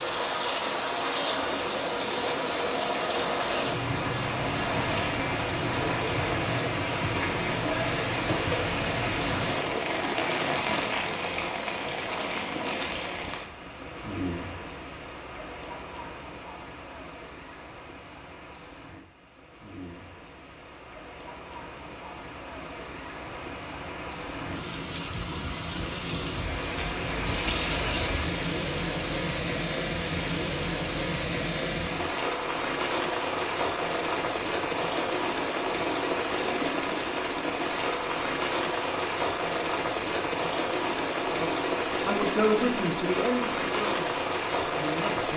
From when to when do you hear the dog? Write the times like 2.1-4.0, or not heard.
not heard.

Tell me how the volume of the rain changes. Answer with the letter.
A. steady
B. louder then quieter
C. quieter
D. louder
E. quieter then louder
E.